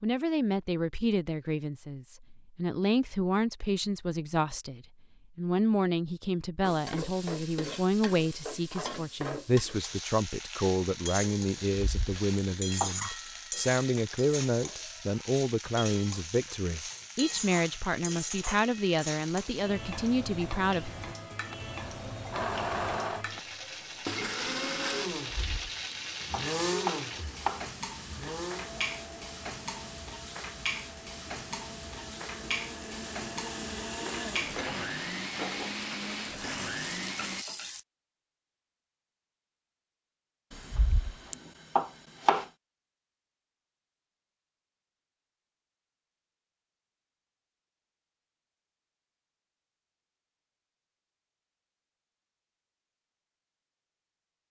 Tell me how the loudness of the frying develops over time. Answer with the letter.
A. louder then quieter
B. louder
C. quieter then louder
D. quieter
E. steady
E.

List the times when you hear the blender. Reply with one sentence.
The blender can be heard from 22.3 to 37.5 s.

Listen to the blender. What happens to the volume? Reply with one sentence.
The volume of the blender goes down, then up.